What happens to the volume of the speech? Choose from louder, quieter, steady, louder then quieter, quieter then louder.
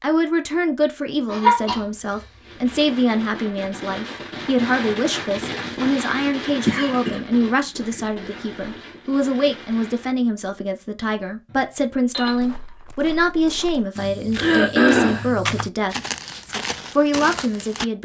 steady.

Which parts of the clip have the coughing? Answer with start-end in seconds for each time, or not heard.
1.3-2.2, 6.7-7.2, 14.3-15.2.